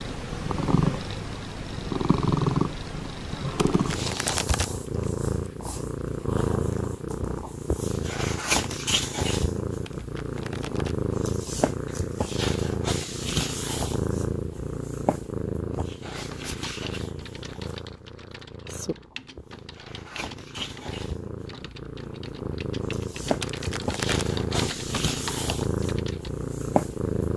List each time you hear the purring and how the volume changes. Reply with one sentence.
You can hear the purring from 0.0 to 27.3 s, getting quieter then louder.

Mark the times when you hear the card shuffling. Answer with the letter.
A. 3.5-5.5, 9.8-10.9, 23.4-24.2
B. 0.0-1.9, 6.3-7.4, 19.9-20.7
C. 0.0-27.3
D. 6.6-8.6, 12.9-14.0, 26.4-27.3
A.